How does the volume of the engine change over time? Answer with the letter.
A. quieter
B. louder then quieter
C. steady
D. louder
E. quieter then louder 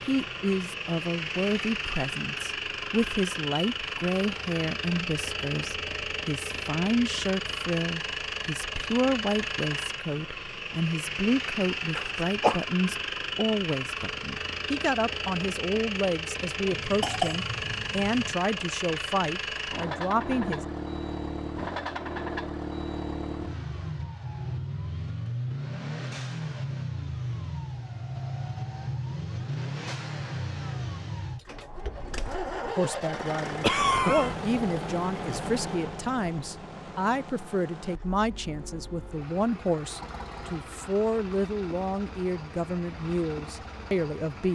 A.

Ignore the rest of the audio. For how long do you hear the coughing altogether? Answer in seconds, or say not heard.
3 s.